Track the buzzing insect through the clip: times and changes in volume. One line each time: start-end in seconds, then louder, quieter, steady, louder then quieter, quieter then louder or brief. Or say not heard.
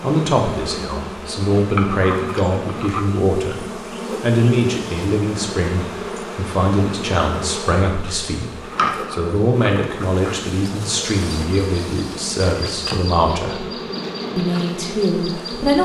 0.0-15.8 steady.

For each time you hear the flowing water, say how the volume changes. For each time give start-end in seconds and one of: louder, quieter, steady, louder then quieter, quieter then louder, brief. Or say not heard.
not heard.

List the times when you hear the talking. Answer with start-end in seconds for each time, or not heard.
0.0-3.6, 4.2-13.7, 14.3-15.8.